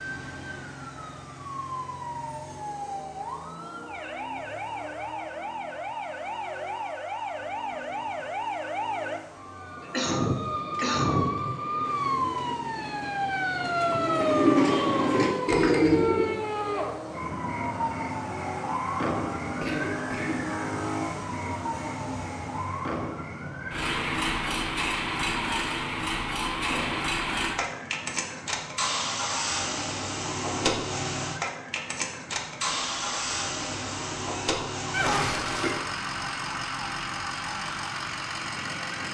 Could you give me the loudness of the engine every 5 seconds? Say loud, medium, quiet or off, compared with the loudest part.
quiet, quiet, quiet, medium, loud, loud, loud, loud.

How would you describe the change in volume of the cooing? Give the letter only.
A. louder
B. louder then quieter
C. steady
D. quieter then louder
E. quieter
A.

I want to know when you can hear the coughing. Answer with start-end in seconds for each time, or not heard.
9.8-11.3, 19.6-20.5, 34.9-35.9.